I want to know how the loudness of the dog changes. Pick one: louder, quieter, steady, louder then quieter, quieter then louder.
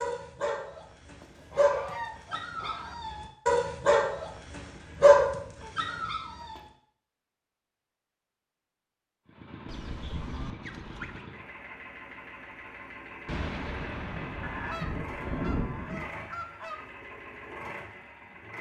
louder.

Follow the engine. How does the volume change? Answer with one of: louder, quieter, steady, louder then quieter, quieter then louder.
steady.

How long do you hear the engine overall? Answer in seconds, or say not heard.
9 s.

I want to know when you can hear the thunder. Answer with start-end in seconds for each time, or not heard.
13.2-16.1.